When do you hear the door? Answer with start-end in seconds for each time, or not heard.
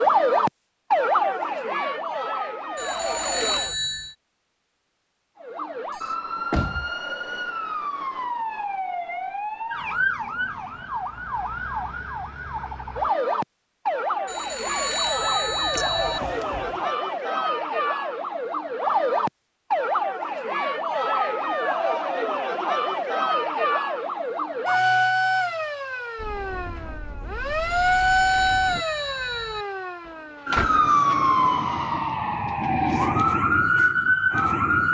5.9-6.9, 15.7-16.8, 30.1-30.9.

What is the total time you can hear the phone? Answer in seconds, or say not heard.
5 s.